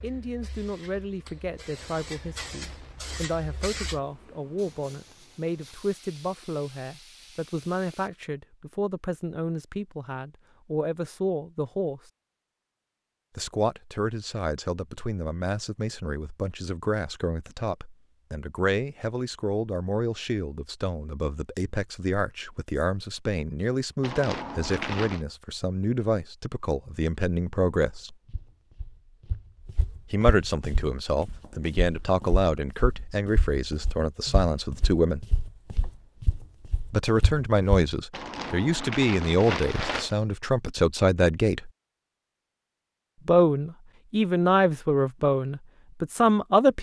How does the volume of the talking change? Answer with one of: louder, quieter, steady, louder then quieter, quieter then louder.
louder.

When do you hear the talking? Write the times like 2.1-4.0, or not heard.
0.0-12.0, 13.3-28.1, 30.1-35.2, 36.9-41.7, 43.2-46.7.